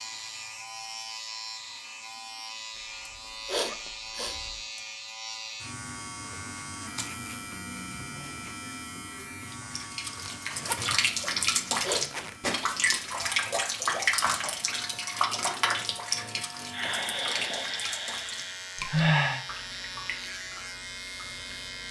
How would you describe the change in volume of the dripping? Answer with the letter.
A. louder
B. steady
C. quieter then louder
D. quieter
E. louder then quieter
D.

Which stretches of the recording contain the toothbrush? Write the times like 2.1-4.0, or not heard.
not heard.